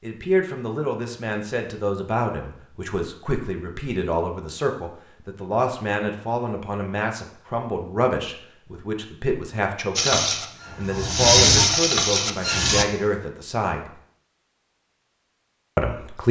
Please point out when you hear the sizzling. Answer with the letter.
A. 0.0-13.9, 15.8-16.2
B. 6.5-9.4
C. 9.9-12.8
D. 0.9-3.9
C.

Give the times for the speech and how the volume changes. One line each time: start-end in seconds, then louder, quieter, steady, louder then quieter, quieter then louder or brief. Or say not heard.
0.0-13.9 steady
15.8-16.2 brief.